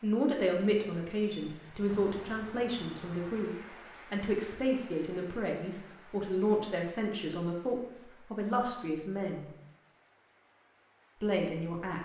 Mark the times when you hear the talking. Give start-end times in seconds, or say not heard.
0.0-9.5, 11.2-12.0.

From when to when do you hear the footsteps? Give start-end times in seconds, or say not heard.
not heard.